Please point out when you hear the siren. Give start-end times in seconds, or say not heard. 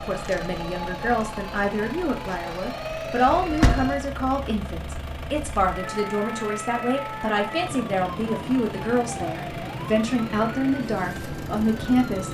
0.0-12.2.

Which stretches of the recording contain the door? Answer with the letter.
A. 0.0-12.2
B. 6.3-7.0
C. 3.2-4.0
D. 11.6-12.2
C.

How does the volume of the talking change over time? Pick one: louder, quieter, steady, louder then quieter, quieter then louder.
steady.